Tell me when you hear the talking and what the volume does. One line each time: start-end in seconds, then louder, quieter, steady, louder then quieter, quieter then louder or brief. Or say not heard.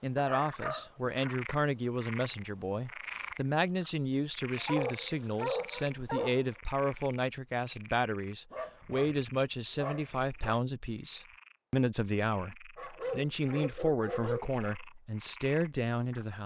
0.0-16.4 steady.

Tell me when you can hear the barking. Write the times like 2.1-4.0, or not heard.
0.1-1.6, 4.5-6.5, 8.5-10.6, 12.8-14.8.